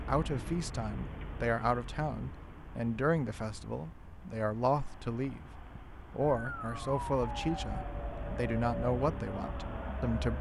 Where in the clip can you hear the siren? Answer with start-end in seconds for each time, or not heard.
6.2-10.3.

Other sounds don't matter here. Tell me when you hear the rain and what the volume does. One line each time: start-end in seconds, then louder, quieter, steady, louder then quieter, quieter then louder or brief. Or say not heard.
not heard.